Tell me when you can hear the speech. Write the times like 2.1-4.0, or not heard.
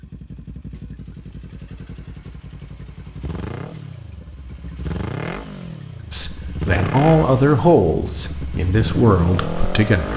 6.1-10.1.